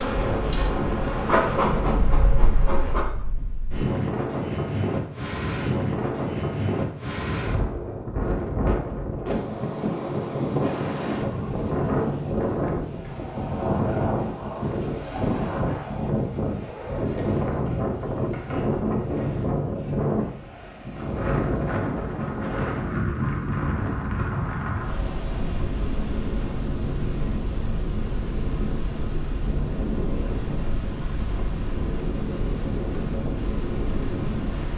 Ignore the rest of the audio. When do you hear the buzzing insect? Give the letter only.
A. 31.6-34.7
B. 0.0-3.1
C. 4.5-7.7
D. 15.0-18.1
B.